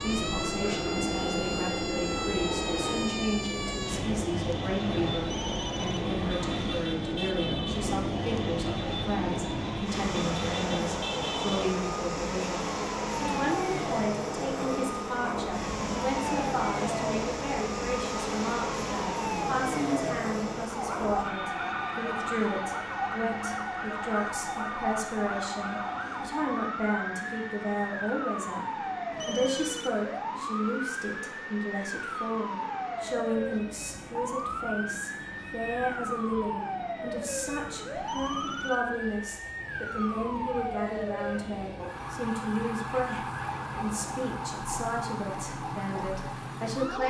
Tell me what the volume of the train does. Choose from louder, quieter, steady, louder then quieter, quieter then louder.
quieter.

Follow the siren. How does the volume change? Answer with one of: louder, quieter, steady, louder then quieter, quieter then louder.
steady.